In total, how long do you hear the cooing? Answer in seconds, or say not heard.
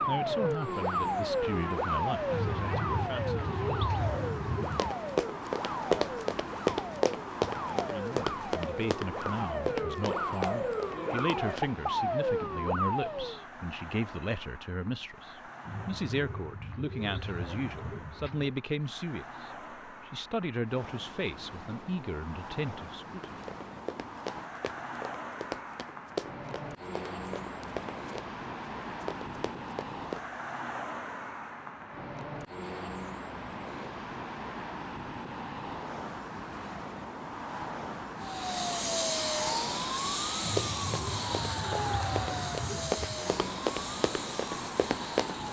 8 s.